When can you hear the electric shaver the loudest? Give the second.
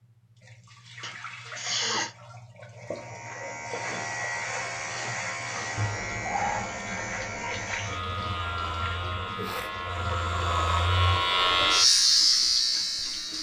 12 s.